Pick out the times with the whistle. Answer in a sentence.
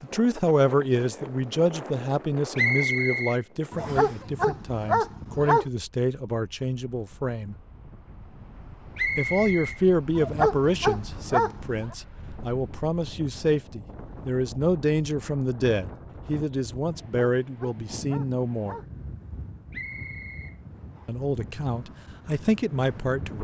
The whistle can be heard from 2.5 to 4.2 s, from 8.9 to 9.8 s and from 19.7 to 21.1 s.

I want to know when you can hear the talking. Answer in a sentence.
You can hear the talking from 0.0 to 7.5 s, from 9.2 to 18.8 s and from 21.1 to 23.3 s.